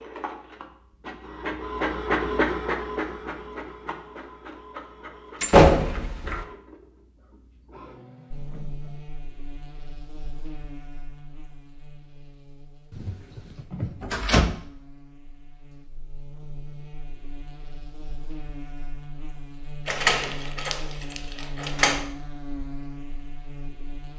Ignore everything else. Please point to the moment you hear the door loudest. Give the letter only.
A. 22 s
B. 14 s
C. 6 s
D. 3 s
C.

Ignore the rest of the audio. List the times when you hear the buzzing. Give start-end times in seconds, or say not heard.
8.3-24.1.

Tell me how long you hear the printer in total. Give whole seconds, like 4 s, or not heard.
9 s.